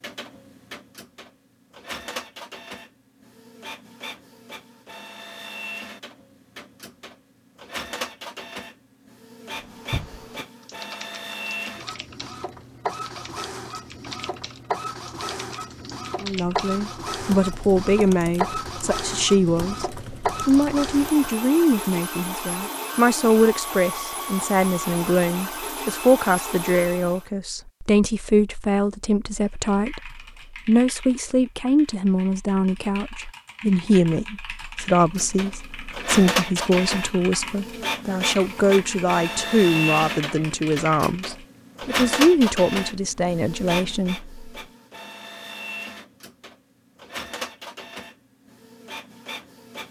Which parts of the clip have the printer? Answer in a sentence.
You can hear the printer from 0.0 to 27.2 s and from 34.9 to 49.8 s.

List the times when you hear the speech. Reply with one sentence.
The speech can be heard from 16.2 to 19.9 s and from 20.4 to 44.2 s.